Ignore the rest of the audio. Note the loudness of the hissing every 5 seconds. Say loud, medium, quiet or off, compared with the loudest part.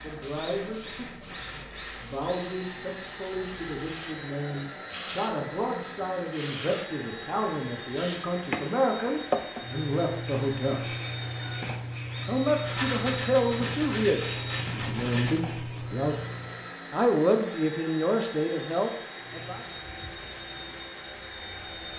medium, loud, loud, medium, quiet.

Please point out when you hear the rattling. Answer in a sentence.
The rattling can be heard from 12.7 to 15.4 s.